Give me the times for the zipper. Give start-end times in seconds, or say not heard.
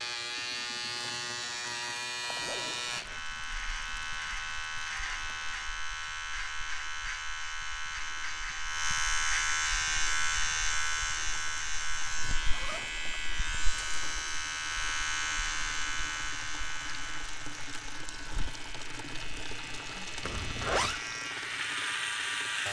2.3-3.0, 12.4-13.2, 20.2-21.0.